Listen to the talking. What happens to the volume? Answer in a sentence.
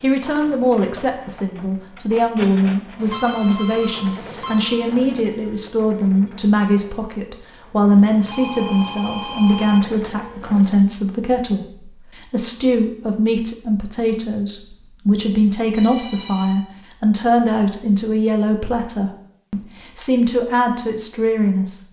The volume of the talking stays about the same.